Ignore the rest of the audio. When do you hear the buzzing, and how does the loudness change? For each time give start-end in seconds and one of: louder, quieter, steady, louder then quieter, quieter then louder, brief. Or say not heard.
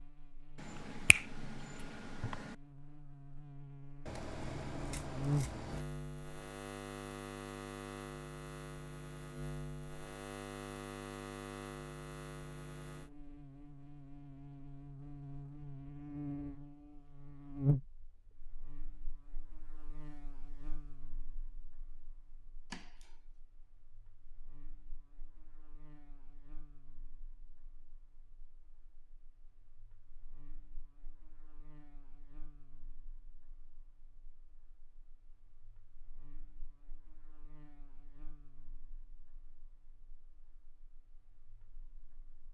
0.0-42.4 quieter.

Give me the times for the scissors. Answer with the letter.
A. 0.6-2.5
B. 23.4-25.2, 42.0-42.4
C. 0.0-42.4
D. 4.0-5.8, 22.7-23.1
D.